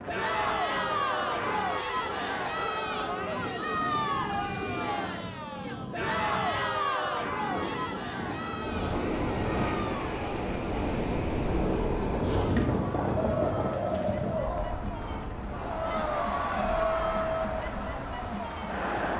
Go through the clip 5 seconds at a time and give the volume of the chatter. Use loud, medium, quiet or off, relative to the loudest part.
loud, loud, medium, loud.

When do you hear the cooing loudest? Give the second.
14 s.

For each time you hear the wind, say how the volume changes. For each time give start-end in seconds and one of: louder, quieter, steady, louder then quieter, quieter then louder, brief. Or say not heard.
0.0-19.1 louder then quieter.